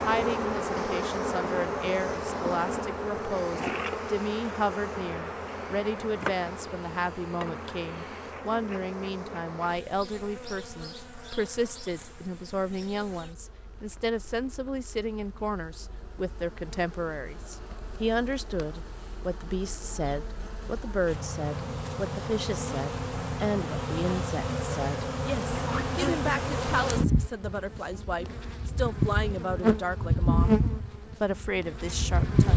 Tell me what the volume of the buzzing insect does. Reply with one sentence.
The loudness of the buzzing insect goes down, then up.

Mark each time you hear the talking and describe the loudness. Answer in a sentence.
The talking can be heard from 0.0 to 32.5 s, at a steady volume.